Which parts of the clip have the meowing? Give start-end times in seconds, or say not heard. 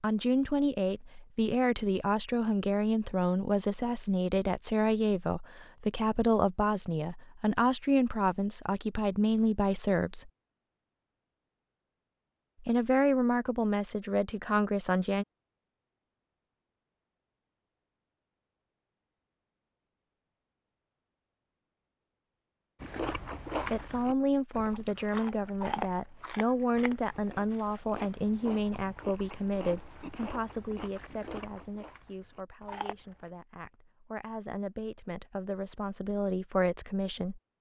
not heard.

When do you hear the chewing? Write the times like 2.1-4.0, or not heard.
22.8-33.3.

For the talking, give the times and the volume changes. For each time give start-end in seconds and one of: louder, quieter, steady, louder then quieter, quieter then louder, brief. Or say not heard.
0.0-10.3 steady
12.6-15.2 brief
23.6-37.4 quieter then louder.